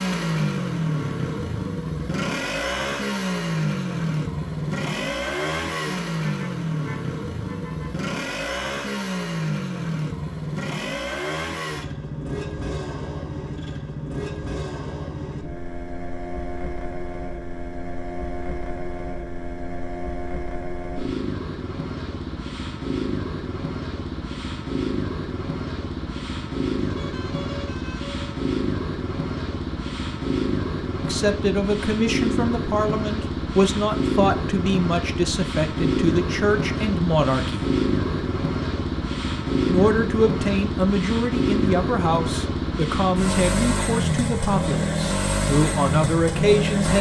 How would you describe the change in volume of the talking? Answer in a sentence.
The volume of the talking stays about the same.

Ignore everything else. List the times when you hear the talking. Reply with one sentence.
The talking can be heard from 31.1 to 37.7 s and from 39.6 to 46.9 s.